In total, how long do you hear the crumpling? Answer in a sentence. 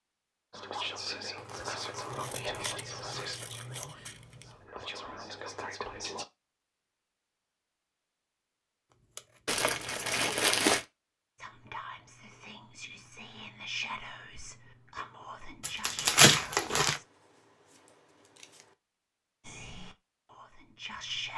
You can hear the crumpling for 5 seconds altogether.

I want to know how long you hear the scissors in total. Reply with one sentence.
You can hear the scissors for 5 seconds altogether.